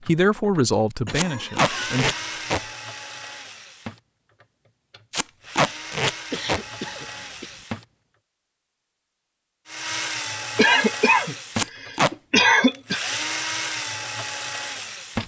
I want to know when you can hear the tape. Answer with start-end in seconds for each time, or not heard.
1.1-2.6, 5.1-6.6, 11.6-12.1.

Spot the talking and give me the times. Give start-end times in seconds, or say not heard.
0.1-2.1.